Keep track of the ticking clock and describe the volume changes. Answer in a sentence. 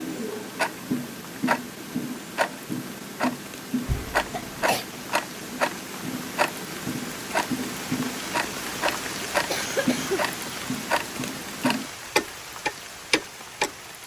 The loudness of the ticking clock stays about the same.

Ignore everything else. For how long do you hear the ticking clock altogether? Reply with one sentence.
You can hear the ticking clock for 14 seconds altogether.